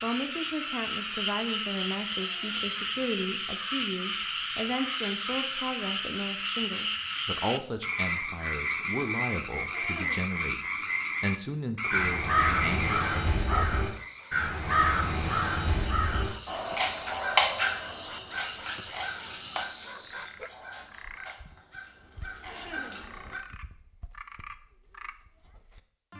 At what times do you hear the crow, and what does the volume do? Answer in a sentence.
The crow can be heard from 11.9 to 23.4 s, getting quieter.